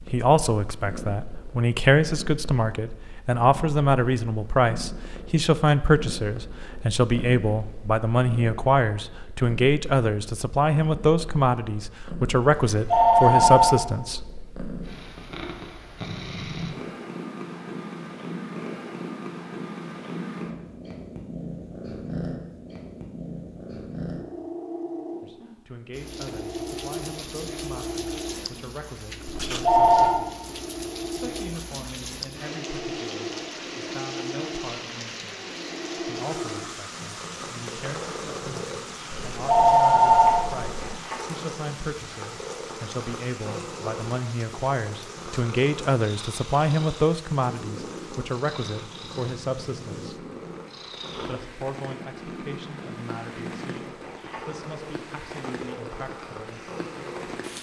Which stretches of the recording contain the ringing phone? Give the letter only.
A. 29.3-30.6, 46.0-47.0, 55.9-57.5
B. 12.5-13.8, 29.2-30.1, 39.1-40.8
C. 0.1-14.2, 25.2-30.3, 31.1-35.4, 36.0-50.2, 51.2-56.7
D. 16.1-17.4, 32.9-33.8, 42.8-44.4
B.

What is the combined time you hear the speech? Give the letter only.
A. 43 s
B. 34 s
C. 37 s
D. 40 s
A.